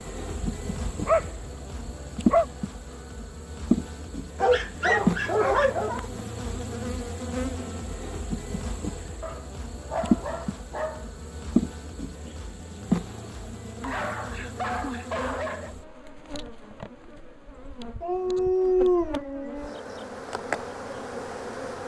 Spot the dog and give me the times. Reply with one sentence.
The dog can be heard from 0.4 to 2.5 s, from 4.4 to 6.0 s, from 9.2 to 11.1 s, from 13.8 to 15.8 s and from 18.0 to 19.8 s.